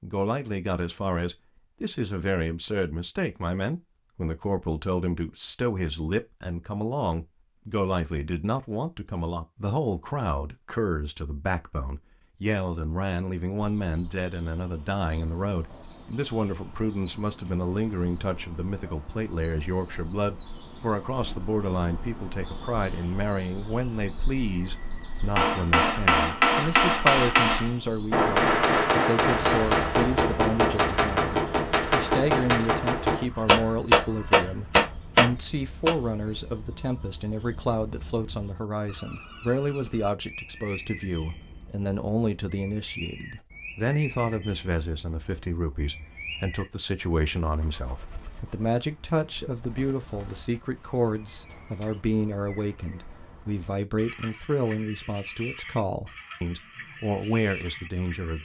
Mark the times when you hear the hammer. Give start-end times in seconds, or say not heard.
25.4-36.0.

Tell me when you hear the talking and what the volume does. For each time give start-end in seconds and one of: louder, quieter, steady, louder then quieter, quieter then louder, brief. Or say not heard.
0.0-58.4 steady.